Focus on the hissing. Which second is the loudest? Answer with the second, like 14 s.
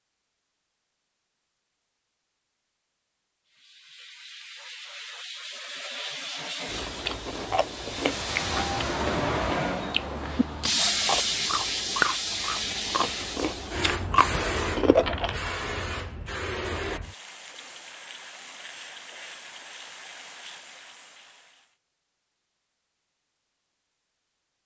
11 s.